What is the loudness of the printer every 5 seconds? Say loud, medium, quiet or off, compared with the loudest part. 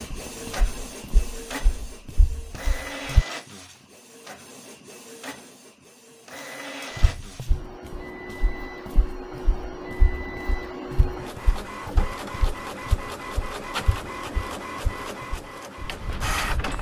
medium, medium, loud, loud.